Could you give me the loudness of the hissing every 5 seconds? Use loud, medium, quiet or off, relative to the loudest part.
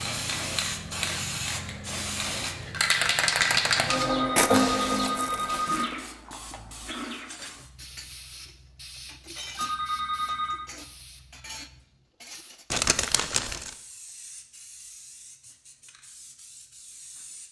loud, quiet, quiet, quiet.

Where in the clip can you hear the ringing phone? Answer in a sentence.
The ringing phone can be heard from 4.0 to 5.8 s and from 9.6 to 10.7 s.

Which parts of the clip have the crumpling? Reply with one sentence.
You can hear the crumpling from 4.3 to 6.0 s and from 12.7 to 13.7 s.